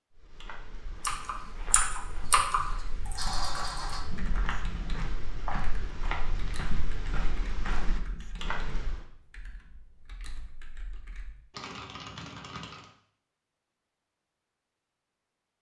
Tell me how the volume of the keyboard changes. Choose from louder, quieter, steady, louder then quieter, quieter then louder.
quieter then louder.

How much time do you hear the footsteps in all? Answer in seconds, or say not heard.
9 s.